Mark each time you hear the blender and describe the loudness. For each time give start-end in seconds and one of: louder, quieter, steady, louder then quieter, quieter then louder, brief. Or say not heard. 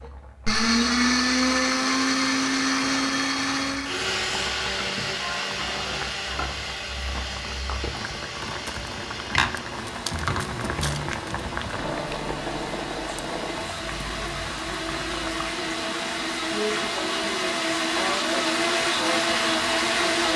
0.0-20.3 quieter then louder.